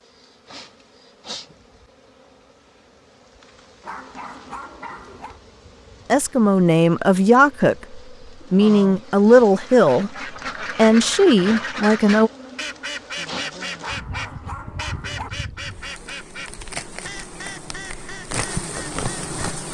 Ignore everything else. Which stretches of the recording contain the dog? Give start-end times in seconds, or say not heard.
3.8-5.4, 13.8-15.3.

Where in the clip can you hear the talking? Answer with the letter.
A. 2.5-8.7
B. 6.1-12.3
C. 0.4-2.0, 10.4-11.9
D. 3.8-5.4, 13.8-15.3
B.